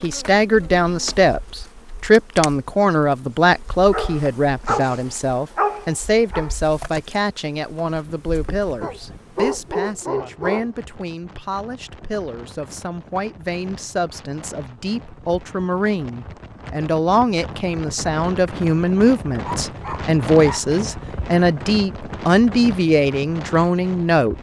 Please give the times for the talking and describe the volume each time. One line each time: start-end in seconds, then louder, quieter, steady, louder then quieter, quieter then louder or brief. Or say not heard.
0.0-24.3 quieter then louder.